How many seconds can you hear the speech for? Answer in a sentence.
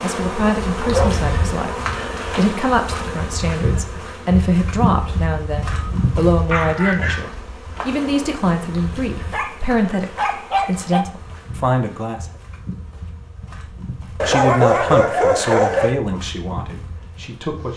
You can hear the speech for 16 seconds altogether.